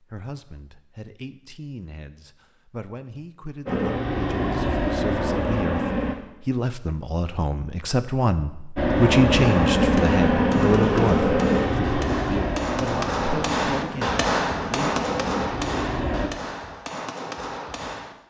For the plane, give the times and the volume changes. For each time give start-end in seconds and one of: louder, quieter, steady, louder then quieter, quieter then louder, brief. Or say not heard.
3.6-6.2 brief
8.8-16.3 quieter.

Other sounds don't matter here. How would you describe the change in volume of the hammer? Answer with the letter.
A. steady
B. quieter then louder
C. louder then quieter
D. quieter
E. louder
C.